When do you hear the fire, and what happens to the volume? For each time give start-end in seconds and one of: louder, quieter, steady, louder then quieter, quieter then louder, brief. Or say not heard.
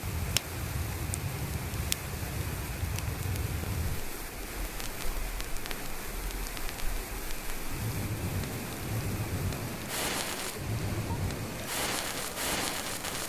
0.0-13.2 quieter then louder.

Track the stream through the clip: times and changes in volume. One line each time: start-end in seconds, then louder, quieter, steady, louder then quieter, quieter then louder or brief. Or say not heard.
0.0-13.2 steady.